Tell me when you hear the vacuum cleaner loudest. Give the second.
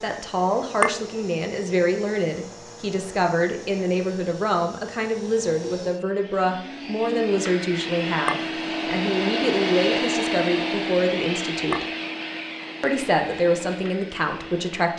10 s.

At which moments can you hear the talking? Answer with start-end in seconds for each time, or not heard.
0.0-11.8, 12.8-14.9.